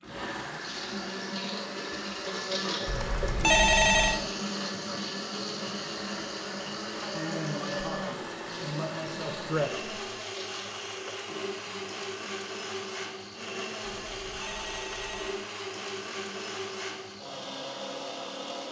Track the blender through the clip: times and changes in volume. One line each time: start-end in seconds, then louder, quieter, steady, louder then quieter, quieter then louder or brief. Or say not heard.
0.0-18.6 steady.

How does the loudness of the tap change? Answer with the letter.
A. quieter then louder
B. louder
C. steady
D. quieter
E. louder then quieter
D.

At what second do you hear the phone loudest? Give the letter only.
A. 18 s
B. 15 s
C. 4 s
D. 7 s
C.